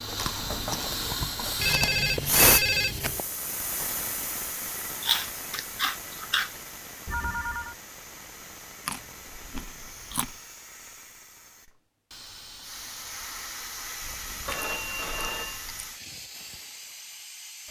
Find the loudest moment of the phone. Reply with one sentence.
The volume of the phone peaks at 3 seconds.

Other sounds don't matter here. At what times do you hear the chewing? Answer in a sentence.
You can hear the chewing from 0.1 to 2.5 s, from 5.0 to 6.5 s, from 8.8 to 10.3 s and from 14.0 to 15.9 s.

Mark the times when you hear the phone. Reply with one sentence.
The phone can be heard from 1.6 to 3.2 s, from 7.0 to 7.8 s and from 14.4 to 15.7 s.